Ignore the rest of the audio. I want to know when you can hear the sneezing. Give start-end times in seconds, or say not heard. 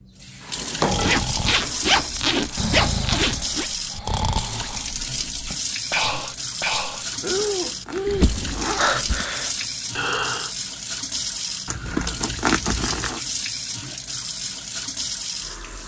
not heard.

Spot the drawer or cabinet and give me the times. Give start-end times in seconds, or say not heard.
0.4-2.8, 8.1-9.2.